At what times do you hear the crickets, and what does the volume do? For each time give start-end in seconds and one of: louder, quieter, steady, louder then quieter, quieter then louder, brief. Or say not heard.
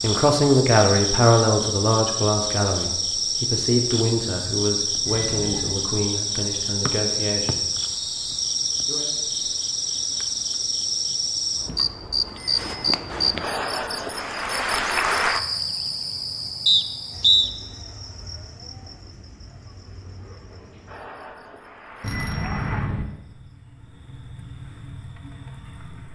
0.0-26.0 quieter.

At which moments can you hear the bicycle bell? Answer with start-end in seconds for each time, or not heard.
5.0-5.8, 12.3-12.8, 22.0-23.1.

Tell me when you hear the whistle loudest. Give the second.
17 s.